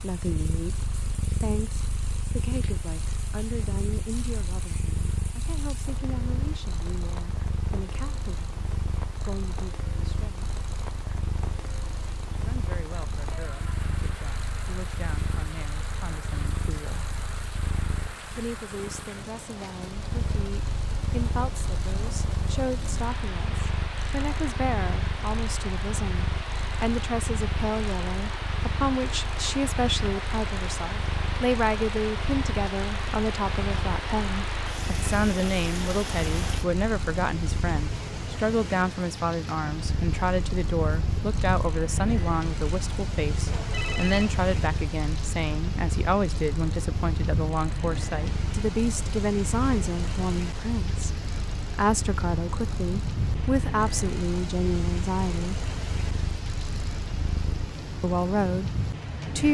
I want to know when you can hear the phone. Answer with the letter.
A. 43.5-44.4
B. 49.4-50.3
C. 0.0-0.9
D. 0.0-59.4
A.